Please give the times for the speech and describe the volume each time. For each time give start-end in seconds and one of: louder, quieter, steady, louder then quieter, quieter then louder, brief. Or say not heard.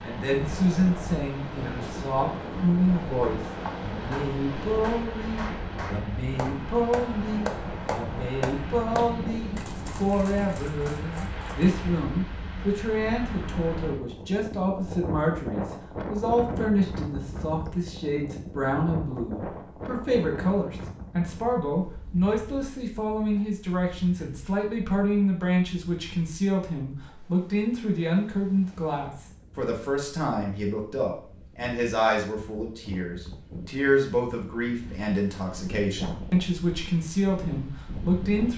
0.0-38.5 steady.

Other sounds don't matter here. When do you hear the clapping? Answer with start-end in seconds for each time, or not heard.
3.0-11.8.